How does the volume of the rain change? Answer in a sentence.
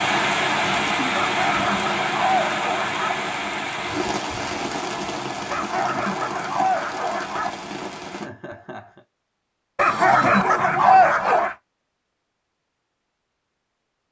The loudness of the rain goes down.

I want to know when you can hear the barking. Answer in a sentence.
The barking can be heard from 1.1 to 3.1 s, from 5.5 to 7.5 s and from 9.8 to 11.6 s.